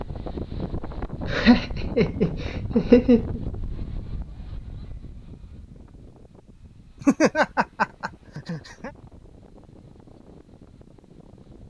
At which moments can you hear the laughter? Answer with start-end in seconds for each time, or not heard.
1.2-3.4, 7.0-8.9.